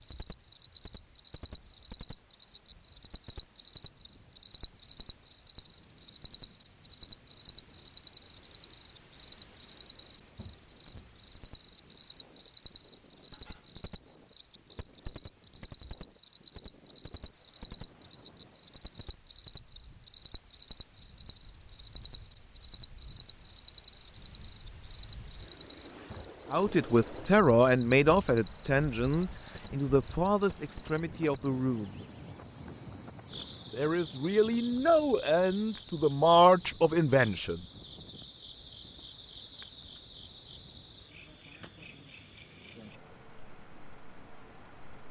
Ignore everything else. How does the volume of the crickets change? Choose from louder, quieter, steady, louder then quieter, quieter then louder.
quieter.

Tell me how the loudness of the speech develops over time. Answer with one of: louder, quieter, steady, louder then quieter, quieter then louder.
quieter then louder.